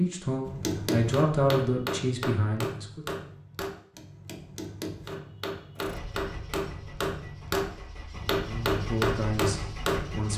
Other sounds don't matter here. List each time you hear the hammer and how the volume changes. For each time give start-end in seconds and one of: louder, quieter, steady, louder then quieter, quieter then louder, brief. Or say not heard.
0.5-10.3 quieter then louder.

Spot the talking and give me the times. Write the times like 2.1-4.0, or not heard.
0.0-3.0, 8.3-10.3.